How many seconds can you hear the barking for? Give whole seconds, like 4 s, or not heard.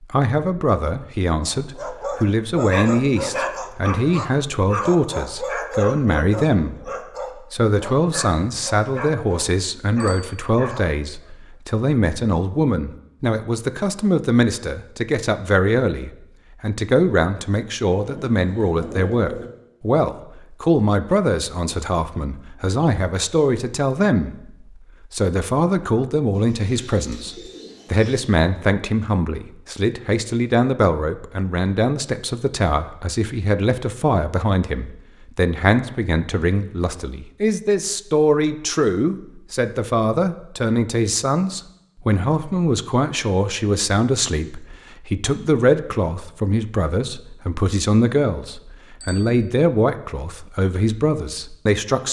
10 s.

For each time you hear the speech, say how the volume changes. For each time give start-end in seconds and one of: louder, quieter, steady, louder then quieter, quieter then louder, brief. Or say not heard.
0.0-24.3 steady
25.1-52.0 steady.